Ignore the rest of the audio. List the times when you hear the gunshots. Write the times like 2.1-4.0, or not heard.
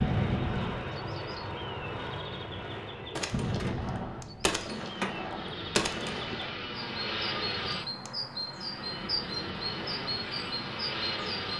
3.1-6.5.